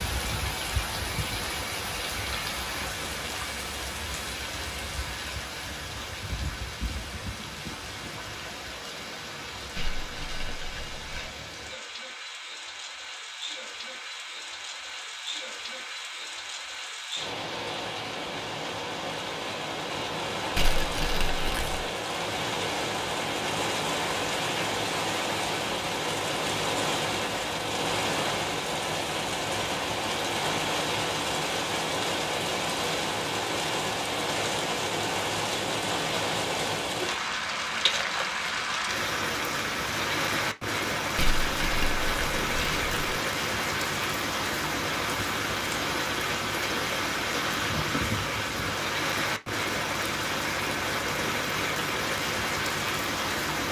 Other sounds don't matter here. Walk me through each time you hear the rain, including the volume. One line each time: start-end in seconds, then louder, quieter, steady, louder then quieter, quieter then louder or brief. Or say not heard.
0.0-53.6 louder.